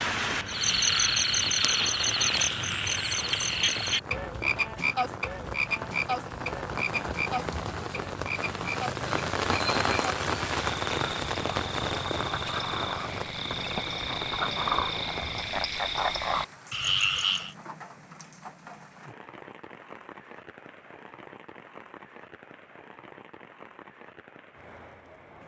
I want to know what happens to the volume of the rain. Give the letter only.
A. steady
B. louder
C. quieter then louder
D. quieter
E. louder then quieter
E.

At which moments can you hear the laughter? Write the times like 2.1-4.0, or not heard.
not heard.